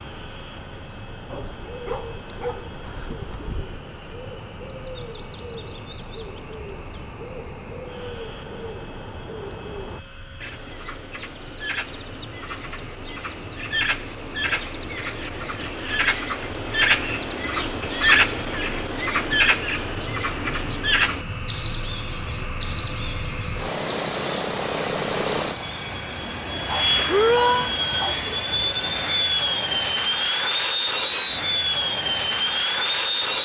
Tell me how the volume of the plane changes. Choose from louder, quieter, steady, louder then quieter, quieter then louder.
louder.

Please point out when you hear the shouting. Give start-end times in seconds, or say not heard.
27.1-27.7.